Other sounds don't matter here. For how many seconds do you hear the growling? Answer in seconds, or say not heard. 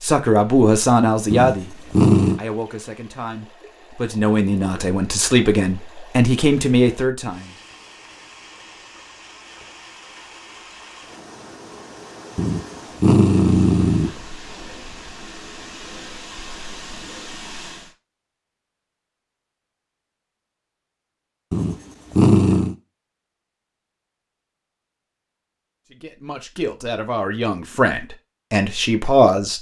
4 s.